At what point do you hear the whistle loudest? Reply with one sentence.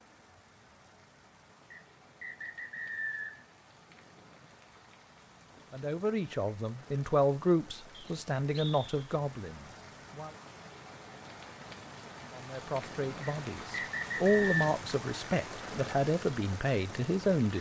The volume of the whistle peaks at 14 seconds.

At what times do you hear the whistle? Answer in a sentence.
You can hear the whistle from 1.7 to 3.5 s, from 7.9 to 8.9 s and from 13.2 to 14.6 s.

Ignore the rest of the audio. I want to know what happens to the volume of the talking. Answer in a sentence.
The loudness of the talking goes down, then up.